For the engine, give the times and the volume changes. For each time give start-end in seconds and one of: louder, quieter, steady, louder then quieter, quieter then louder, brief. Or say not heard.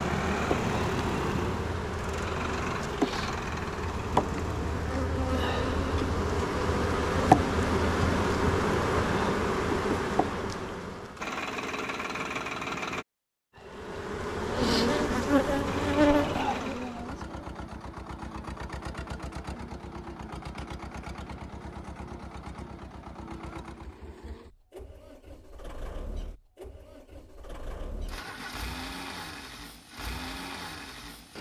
0.0-4.9 quieter
11.2-13.1 brief
15.6-31.3 quieter then louder.